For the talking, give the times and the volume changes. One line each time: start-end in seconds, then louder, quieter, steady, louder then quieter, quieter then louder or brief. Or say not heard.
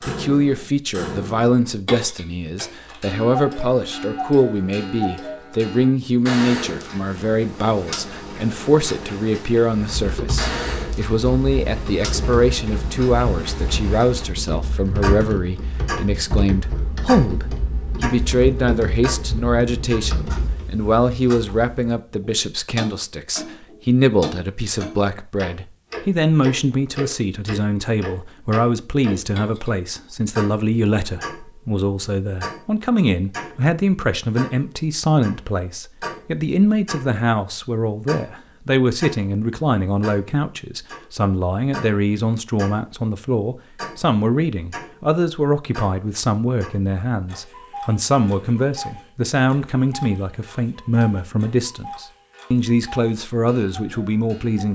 0.0-54.7 steady.